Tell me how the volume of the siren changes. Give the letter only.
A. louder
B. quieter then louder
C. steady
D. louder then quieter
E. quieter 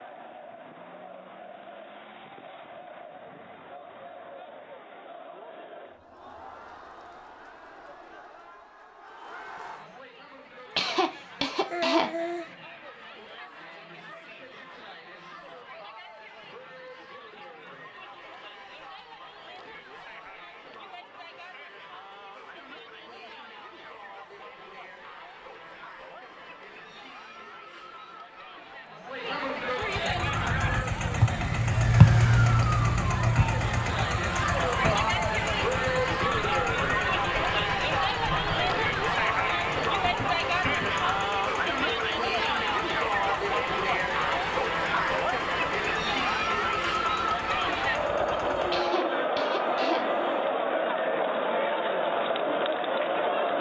E.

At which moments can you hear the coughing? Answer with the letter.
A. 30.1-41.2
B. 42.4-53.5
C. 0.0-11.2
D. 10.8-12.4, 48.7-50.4
D.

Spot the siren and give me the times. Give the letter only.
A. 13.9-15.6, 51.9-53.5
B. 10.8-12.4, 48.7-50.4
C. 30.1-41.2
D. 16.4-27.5
C.